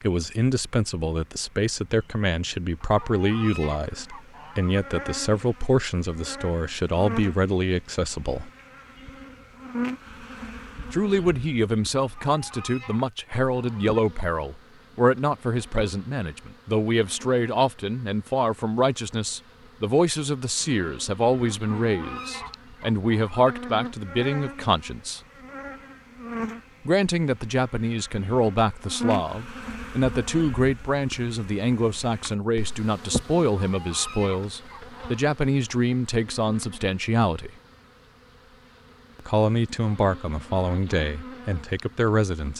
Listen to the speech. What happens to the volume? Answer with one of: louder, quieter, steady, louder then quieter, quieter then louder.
steady.